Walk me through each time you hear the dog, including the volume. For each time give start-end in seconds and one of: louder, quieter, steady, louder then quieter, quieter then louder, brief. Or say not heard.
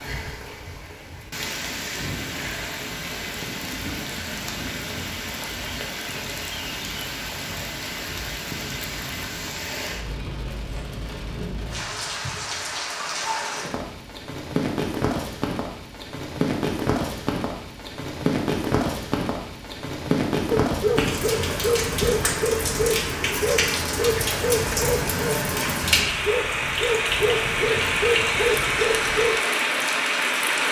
20.5-29.4 steady.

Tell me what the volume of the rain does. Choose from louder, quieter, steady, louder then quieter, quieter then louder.
louder.